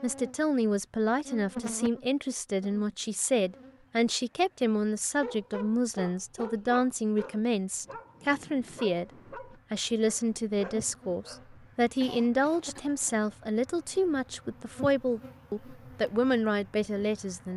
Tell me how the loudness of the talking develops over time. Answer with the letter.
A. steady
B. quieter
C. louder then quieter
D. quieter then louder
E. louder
A.